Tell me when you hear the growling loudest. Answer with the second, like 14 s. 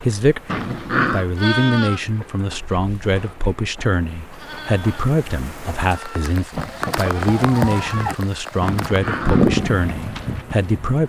1 s.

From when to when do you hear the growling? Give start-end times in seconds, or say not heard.
0.5-1.2, 8.7-9.6.